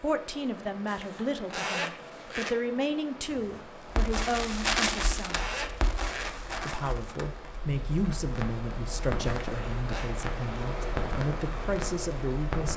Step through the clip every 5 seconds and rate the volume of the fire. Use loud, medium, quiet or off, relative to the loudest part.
loud, medium, medium.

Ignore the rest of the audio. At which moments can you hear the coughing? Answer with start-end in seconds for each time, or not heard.
not heard.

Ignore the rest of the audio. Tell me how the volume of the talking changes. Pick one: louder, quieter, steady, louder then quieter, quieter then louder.
steady.